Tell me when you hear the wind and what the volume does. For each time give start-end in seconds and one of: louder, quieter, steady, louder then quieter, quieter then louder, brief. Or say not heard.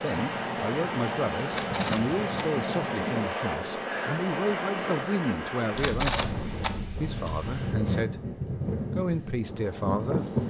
0.0-10.4 steady.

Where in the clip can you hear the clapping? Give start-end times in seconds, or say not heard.
not heard.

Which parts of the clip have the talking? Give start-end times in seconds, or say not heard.
0.0-6.2, 7.0-8.3, 8.9-10.2.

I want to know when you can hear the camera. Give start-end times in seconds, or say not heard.
1.5-2.5, 5.8-6.7.